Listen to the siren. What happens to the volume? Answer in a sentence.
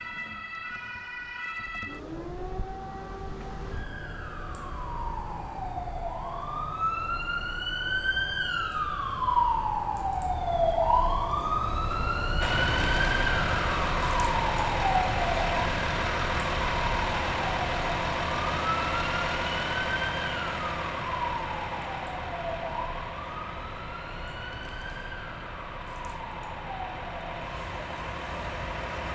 The volume of the siren goes up, then down.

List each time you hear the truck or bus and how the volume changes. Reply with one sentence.
The truck or bus can be heard from 12.4 to 29.0 s, getting quieter.